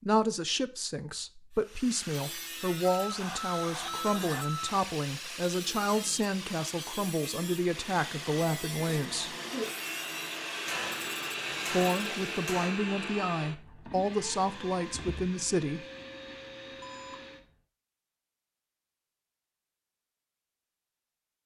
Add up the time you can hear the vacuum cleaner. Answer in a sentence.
The vacuum cleaner can be heard for 10 seconds in total.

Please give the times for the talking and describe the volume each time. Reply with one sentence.
You can hear the talking from 0.0 to 9.3 s, at a steady volume; and from 11.7 to 15.8 s, at a steady volume.